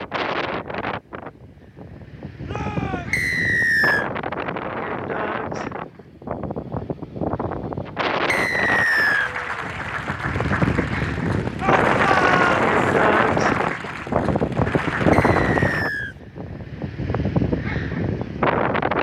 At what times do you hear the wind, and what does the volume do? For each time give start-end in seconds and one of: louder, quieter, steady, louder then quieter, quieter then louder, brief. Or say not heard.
0.0-18.9 louder.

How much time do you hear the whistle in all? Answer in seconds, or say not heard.
3 s.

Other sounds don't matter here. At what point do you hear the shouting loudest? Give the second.
12 s.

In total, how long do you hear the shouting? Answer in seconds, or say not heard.
2 s.